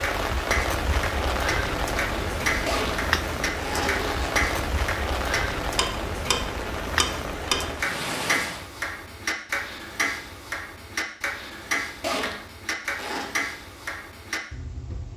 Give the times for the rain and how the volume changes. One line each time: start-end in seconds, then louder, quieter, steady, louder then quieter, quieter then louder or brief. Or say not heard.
0.0-8.7 steady.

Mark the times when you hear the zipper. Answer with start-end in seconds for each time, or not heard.
2.6-4.5, 12.0-13.3.